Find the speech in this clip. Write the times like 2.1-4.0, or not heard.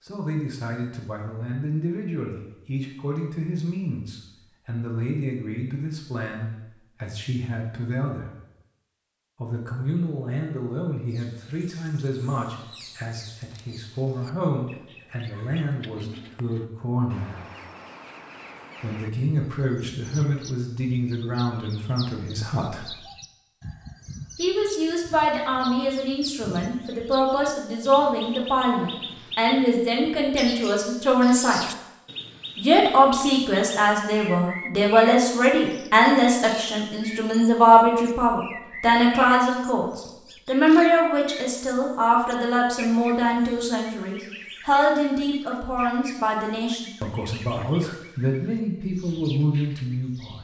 0.0-8.2, 9.4-17.5, 18.8-23.0, 24.4-31.6, 32.5-50.3.